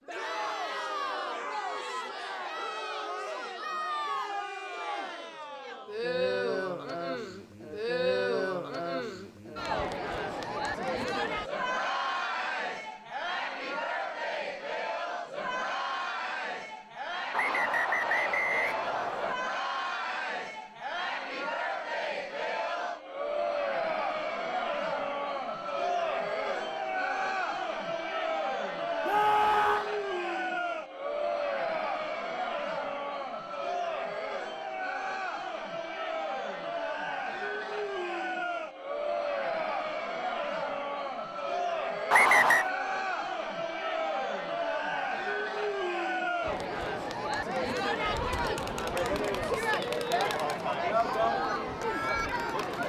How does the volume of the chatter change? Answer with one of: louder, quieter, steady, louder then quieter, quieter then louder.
steady.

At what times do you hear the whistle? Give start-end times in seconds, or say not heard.
17.3-19.4, 42.1-42.7.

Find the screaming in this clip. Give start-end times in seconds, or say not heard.
29.1-29.9.